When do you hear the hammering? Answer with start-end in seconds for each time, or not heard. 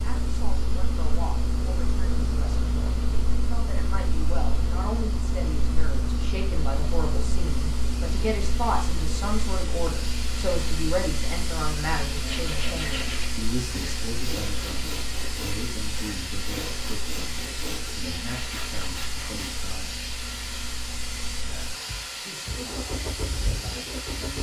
not heard.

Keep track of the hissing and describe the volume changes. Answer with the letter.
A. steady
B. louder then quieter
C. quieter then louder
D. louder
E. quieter
D.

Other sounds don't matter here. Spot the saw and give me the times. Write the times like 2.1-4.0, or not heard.
12.1-19.6.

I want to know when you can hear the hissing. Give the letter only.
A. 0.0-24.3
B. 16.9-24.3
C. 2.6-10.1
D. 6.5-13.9
A.